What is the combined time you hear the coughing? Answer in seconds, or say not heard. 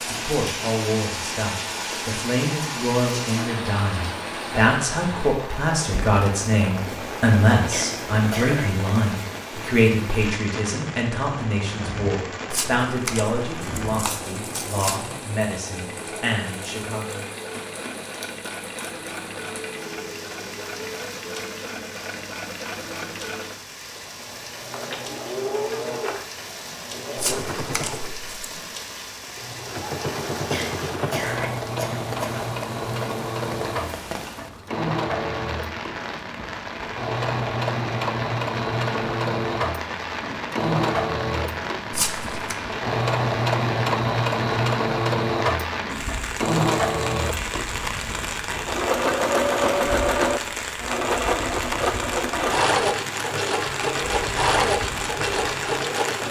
3 s.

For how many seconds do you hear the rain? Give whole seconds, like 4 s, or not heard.
56 s.